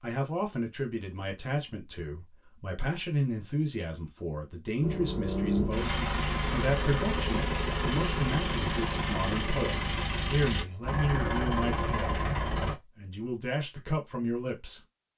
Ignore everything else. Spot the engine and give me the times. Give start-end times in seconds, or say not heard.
4.8-12.8.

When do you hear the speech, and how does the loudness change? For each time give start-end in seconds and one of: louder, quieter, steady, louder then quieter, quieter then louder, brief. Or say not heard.
0.0-14.8 steady.